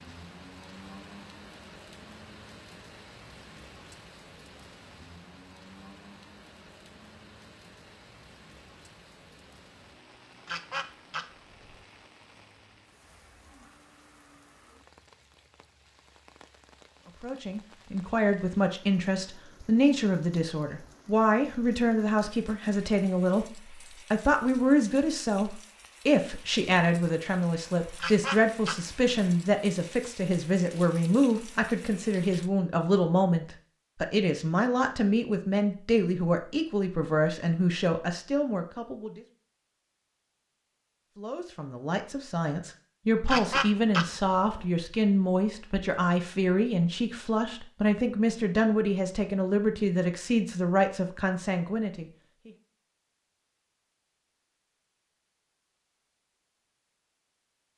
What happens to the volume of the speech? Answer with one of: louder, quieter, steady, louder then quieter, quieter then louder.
steady.